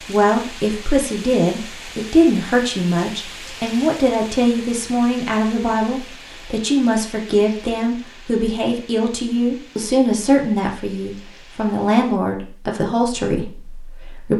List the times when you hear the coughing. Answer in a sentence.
You can't hear the coughing here.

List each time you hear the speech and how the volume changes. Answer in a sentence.
You can hear the speech from 0.1 to 14.3 s, at a steady volume.